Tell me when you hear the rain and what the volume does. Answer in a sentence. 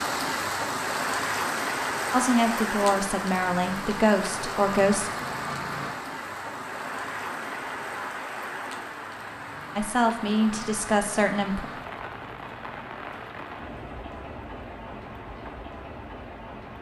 The rain can be heard from 0.0 to 16.7 s, getting quieter.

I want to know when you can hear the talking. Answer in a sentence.
You can hear the talking from 2.1 to 5.1 s and from 9.8 to 11.7 s.